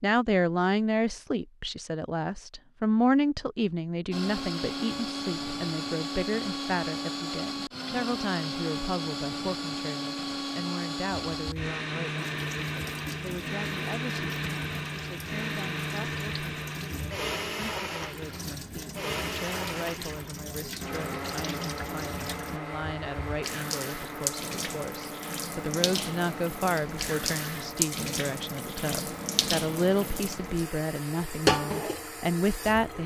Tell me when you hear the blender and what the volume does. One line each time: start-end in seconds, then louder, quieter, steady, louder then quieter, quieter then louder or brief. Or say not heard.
4.1-33.0 quieter.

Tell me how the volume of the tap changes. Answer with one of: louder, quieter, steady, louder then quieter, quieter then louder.
louder.